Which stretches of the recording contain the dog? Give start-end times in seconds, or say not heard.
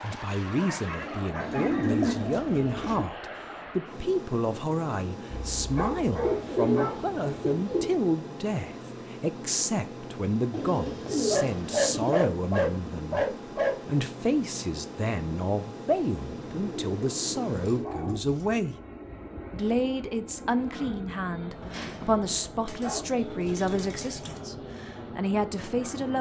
0.6-2.1, 5.5-7.0, 11.3-13.8, 17.6-18.4, 21.6-23.1.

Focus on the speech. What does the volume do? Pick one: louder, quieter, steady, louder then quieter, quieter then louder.
steady.